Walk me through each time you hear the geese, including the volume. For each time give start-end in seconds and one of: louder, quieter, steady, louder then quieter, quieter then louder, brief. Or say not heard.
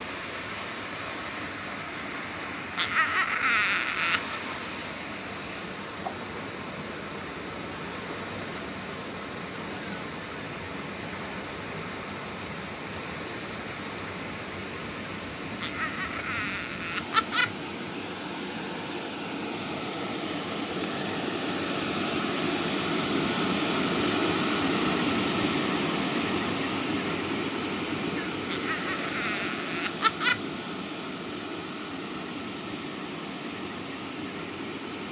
not heard.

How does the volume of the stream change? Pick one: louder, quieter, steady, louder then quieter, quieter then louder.
louder then quieter.